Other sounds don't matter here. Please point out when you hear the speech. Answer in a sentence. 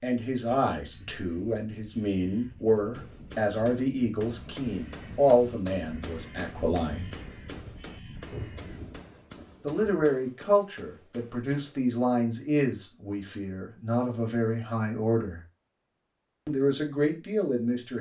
The speech can be heard from 0.0 to 7.2 s, from 9.6 to 15.4 s and from 16.4 to 17.9 s.